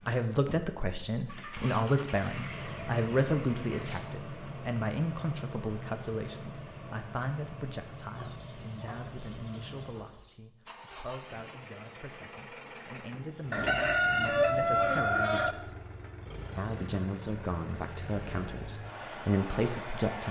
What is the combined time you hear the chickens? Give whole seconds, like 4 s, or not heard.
7 s.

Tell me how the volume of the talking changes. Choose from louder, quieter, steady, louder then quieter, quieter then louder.
quieter then louder.